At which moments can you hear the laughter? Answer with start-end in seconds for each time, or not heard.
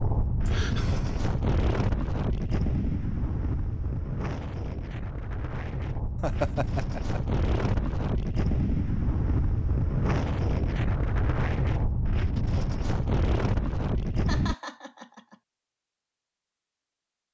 0.4-1.2, 6.2-7.2, 14.2-15.3.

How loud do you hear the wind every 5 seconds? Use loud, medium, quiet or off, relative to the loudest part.
loud, loud, loud, off.